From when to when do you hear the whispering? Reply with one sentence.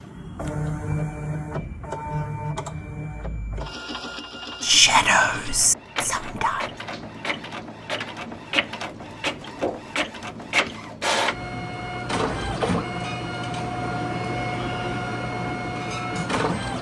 The whispering can be heard from 4.6 to 6.8 s.